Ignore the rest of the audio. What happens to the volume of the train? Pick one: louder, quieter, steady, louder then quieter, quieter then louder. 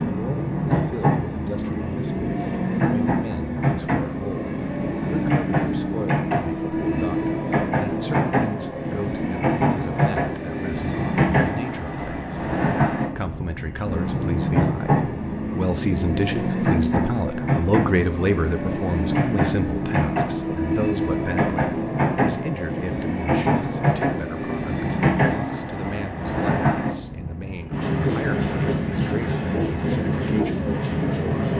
steady.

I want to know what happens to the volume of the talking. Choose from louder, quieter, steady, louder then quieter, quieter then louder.
louder then quieter.